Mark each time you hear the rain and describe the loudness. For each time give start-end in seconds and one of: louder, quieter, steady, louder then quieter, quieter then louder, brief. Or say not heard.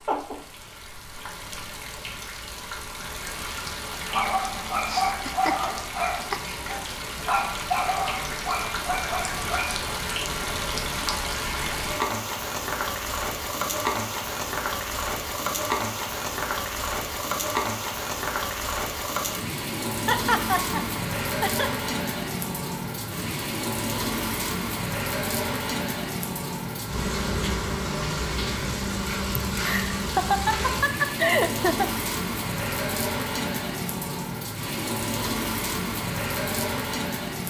0.0-37.4 louder.